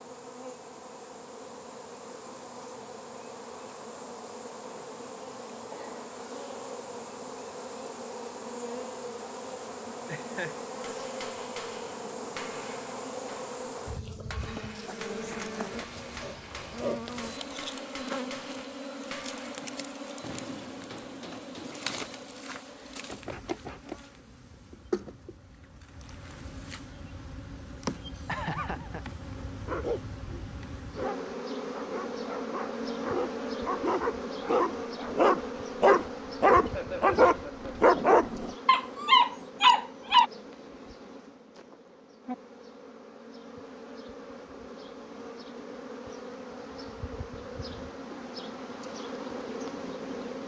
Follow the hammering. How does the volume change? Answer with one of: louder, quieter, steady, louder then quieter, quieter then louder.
steady.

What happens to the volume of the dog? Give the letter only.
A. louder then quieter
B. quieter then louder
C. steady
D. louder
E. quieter
D.